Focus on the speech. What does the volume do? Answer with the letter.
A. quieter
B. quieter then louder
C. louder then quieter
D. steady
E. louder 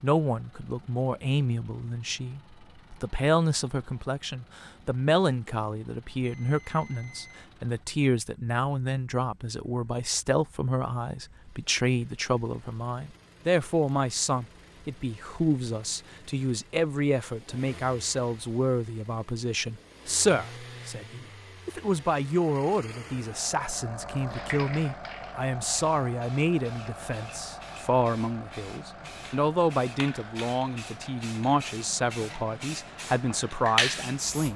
D.